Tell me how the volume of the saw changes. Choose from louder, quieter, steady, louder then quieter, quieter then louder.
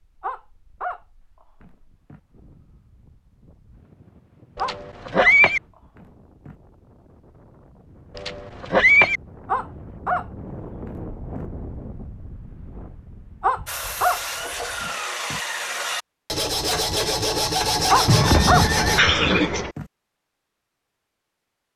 louder.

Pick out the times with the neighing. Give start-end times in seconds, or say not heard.
4.5-5.6, 8.2-9.2, 18.1-19.7.